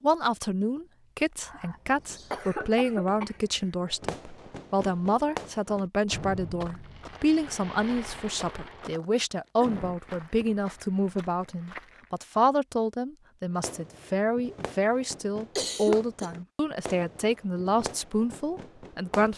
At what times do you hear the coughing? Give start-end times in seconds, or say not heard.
1.4-3.4, 9.6-10.6, 15.6-16.4.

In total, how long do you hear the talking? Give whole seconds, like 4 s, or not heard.
19 s.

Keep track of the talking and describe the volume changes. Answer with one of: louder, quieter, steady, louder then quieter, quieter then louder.
steady.